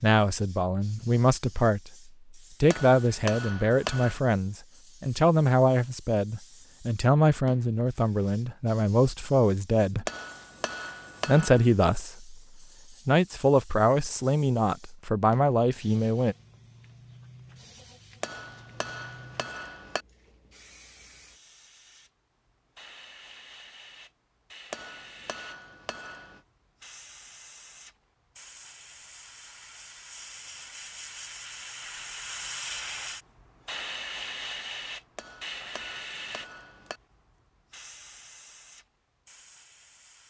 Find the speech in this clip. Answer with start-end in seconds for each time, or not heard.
0.0-1.9, 2.6-10.1, 11.2-12.4, 13.1-16.4.